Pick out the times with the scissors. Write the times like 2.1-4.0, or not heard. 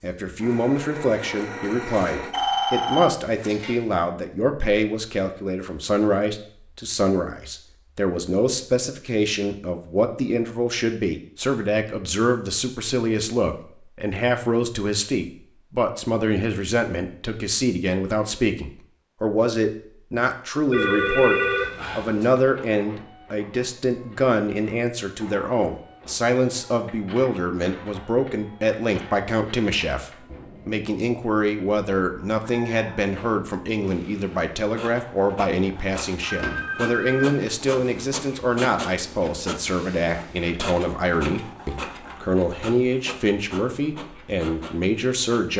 not heard.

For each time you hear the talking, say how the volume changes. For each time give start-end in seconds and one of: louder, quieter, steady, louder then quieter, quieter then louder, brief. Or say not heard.
0.0-45.5 steady.